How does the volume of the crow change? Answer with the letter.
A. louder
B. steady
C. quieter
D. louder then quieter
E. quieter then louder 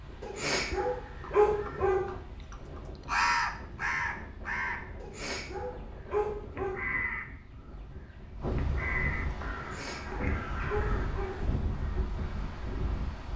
C.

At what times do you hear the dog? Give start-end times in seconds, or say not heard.
0.2-2.1, 5.0-6.8, 9.6-11.5.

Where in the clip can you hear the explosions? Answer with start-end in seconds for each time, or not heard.
8.4-9.6.